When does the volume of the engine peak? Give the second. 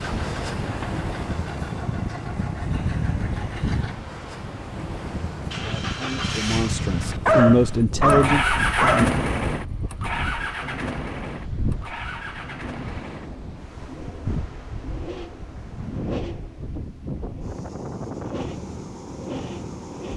9 s.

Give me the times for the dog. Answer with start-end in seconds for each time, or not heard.
7.2-9.1.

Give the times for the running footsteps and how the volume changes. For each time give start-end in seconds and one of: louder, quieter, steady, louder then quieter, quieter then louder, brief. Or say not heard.
not heard.